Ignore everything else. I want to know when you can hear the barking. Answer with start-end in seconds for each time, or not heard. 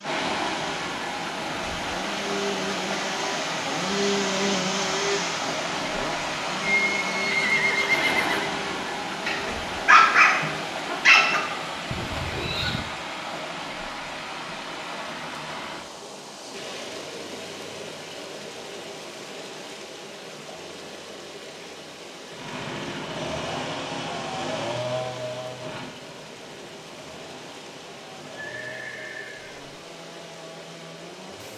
9.2-11.4.